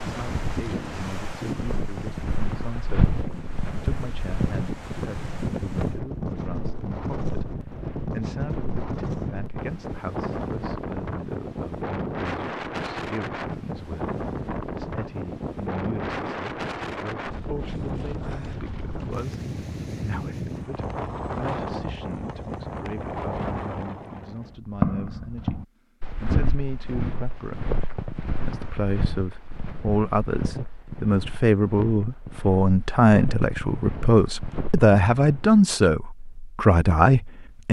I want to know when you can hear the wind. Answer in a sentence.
You can hear the wind from 0.0 to 24.6 s.